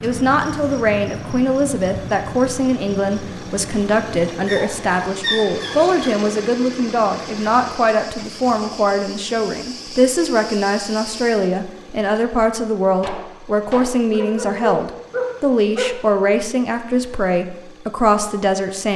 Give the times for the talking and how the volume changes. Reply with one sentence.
You can hear the talking from 0.0 to 18.9 s, at a steady volume.